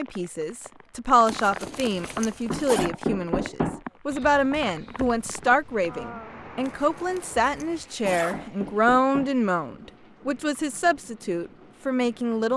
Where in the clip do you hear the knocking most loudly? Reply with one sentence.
The loudest moment of the knocking is at 3 seconds.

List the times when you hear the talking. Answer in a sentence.
You can hear the talking from 0.0 to 12.5 s.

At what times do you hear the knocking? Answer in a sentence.
You can hear the knocking from 2.5 to 3.8 s and from 8.1 to 9.3 s.